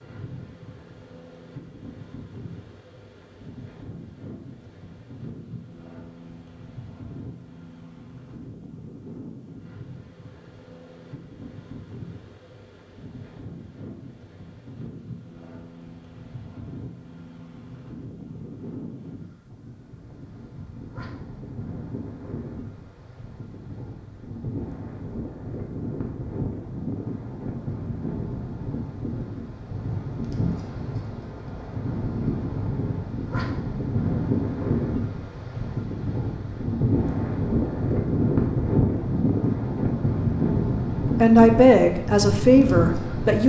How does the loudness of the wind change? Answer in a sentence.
The volume of the wind goes up.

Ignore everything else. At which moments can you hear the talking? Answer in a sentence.
You can hear the talking from 41.2 to 43.4 s.